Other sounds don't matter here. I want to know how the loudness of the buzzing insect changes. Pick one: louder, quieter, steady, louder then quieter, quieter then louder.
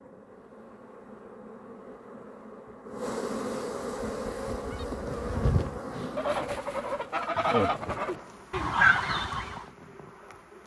louder then quieter.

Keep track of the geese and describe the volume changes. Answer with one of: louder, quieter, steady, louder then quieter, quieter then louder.
louder.